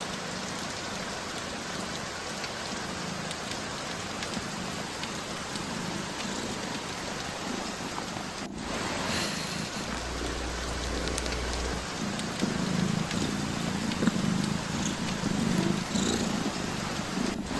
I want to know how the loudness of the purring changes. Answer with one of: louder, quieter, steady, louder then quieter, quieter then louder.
louder.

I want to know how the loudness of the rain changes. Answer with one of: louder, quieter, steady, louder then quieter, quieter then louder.
steady.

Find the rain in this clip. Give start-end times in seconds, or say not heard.
0.0-17.5.